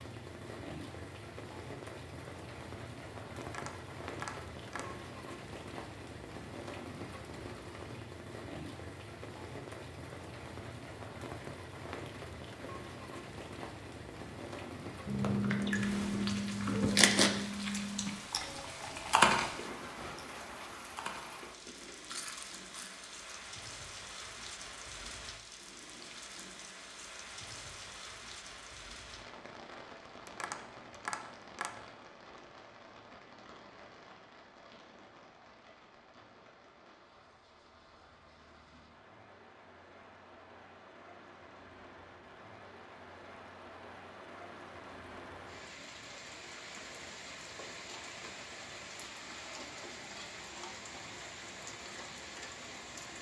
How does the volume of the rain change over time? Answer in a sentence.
The volume of the rain goes down, then up.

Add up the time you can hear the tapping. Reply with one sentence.
The tapping can be heard for 3 seconds in total.